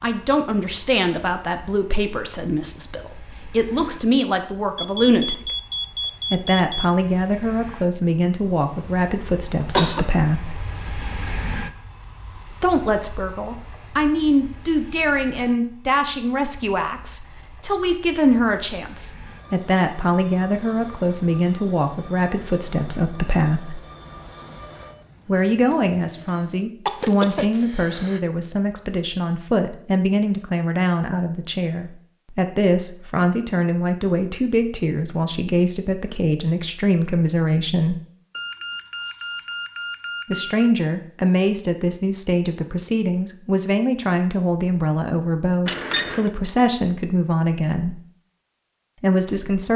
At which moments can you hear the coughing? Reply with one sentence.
The coughing can be heard from 9.3 to 10.1 s, from 26.9 to 28.2 s and from 45.6 to 46.3 s.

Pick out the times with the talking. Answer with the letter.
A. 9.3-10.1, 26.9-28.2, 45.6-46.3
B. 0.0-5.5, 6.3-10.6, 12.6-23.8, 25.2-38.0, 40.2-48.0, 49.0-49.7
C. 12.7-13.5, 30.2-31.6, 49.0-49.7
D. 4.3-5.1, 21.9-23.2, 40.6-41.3
B.